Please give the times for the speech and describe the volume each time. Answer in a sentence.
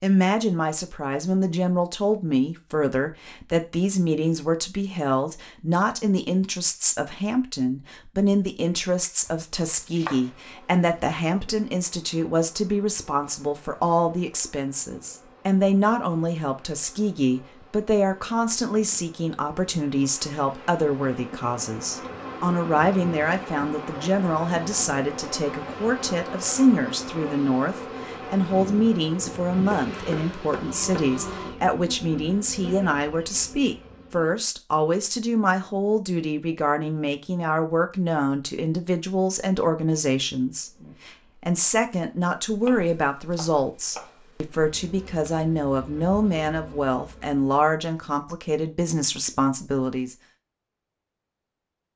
The speech can be heard from 0.0 to 50.1 s, at a steady volume.